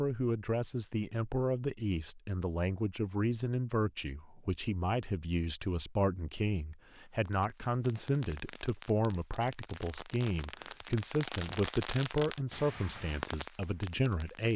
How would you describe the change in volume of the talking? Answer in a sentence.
The loudness of the talking stays about the same.